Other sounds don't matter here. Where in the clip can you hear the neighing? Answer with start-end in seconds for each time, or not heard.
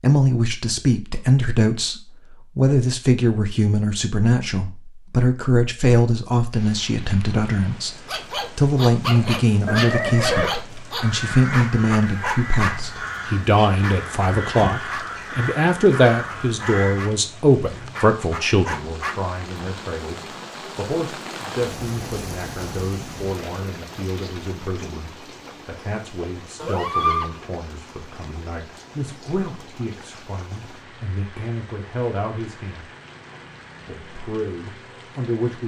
9.7-10.5, 26.6-27.3.